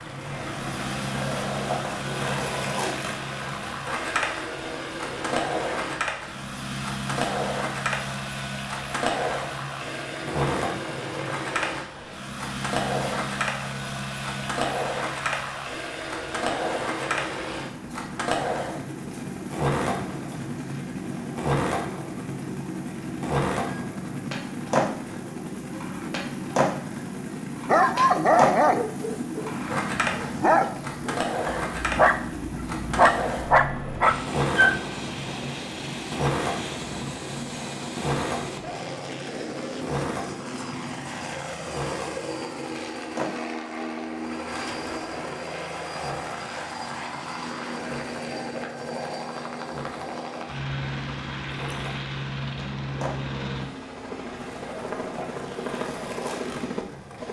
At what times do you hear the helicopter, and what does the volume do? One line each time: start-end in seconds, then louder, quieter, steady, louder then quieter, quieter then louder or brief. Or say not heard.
0.0-57.2 steady.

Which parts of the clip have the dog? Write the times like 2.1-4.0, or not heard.
27.6-34.8.